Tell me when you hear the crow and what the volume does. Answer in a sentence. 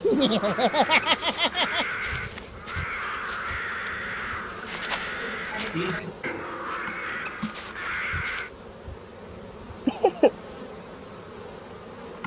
You can hear the crow from 0.1 to 8.5 s, at a steady volume.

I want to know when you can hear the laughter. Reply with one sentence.
The laughter can be heard from 0.0 to 1.9 s, from 5.2 to 6.2 s and from 9.8 to 10.3 s.